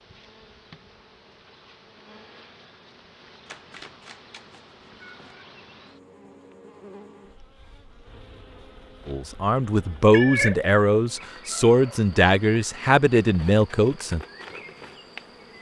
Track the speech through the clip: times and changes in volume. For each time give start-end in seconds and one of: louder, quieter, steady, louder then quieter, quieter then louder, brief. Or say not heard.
9.1-14.2 steady.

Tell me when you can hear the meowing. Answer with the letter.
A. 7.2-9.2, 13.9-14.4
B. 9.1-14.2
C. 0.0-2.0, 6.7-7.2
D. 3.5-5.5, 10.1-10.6
D.